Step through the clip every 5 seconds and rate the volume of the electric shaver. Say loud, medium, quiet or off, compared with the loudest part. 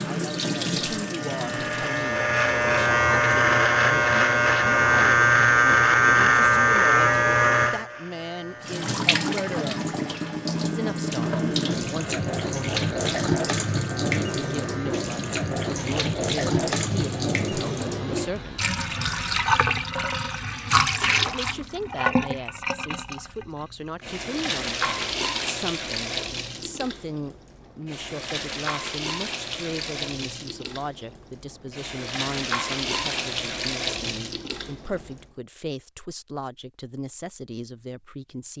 loud, loud, quiet, quiet, off, off, off, off.